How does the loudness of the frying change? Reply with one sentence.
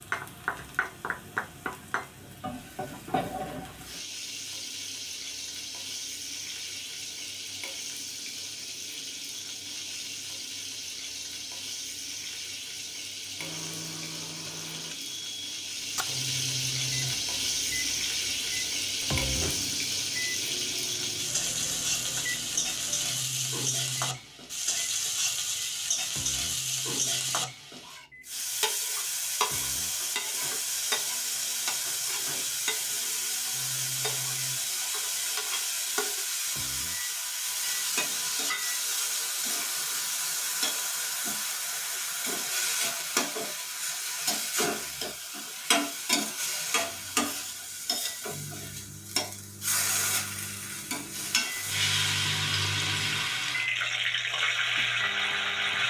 The volume of the frying goes up.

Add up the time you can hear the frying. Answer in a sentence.
You can hear the frying for 56 seconds altogether.